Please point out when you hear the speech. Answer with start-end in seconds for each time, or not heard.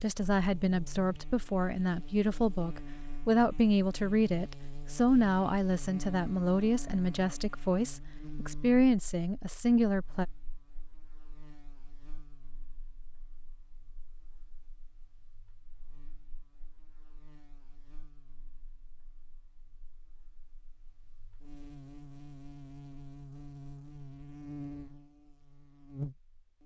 0.0-10.2.